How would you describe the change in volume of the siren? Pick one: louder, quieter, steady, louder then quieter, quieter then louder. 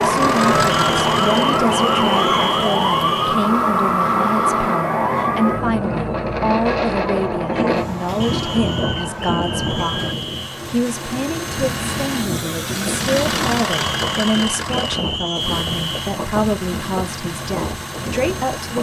quieter.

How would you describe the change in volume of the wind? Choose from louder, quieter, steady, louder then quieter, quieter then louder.
louder then quieter.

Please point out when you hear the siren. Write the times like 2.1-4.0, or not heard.
0.0-10.2.